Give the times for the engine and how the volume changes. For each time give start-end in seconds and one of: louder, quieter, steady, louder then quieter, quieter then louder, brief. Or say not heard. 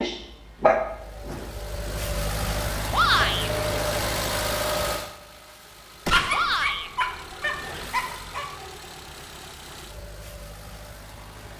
0.1-11.5 louder then quieter.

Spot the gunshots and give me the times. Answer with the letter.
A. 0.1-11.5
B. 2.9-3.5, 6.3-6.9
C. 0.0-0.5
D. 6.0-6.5
D.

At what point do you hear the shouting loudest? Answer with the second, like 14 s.
3 s.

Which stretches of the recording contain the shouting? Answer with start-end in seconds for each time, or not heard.
2.9-3.5, 6.3-6.9.